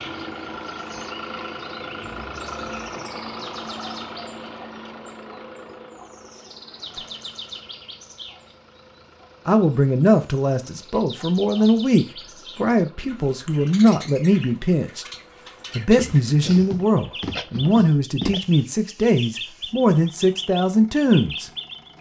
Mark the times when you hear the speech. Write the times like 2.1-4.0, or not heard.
9.4-15.1, 15.8-21.5.